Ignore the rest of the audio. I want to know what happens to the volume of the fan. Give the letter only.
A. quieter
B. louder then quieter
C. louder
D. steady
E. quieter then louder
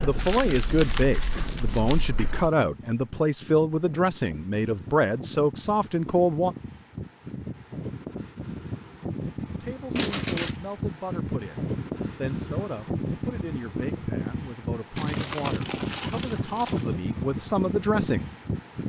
C.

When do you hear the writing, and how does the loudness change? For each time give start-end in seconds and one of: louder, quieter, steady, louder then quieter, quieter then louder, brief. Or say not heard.
not heard.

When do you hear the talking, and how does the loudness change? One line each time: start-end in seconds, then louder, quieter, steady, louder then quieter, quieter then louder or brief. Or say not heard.
0.0-6.5 steady
9.6-18.3 louder.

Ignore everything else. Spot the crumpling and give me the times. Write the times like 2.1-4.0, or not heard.
0.1-2.0, 9.9-10.6, 14.9-16.9.